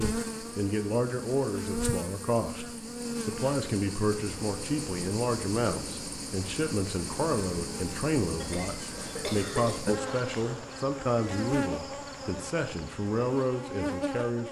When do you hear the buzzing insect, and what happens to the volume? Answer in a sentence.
You can hear the buzzing insect from 0.0 to 14.4 s, at a steady volume.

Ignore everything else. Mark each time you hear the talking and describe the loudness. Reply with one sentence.
You can hear the talking from 0.0 to 14.4 s, at a steady volume.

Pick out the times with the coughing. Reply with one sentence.
You can hear the coughing from 8.3 to 9.8 s.